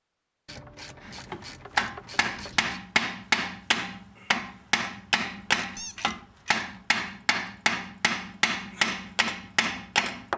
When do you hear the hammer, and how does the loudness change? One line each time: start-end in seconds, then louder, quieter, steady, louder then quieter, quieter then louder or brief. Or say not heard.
1.1-10.3 steady.